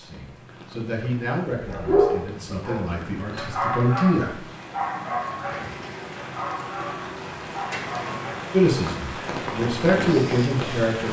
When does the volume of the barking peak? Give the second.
2 s.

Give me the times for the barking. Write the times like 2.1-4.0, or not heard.
1.5-8.4.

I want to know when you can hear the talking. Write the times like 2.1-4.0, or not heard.
0.0-4.4, 8.5-11.0.